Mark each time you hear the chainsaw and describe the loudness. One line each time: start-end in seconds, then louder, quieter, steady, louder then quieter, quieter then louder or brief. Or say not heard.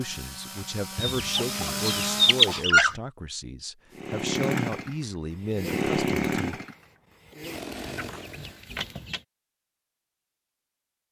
0.0-2.6 brief
4.0-8.6 quieter then louder.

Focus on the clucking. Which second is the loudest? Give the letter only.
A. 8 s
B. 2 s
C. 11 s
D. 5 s
B.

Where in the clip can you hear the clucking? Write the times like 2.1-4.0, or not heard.
0.9-3.0, 7.4-9.2.